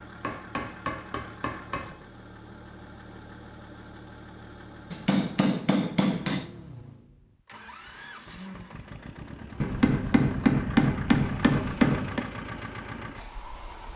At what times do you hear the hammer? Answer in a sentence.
The hammer can be heard from 0.2 to 1.9 s, from 4.9 to 6.5 s and from 9.6 to 12.2 s.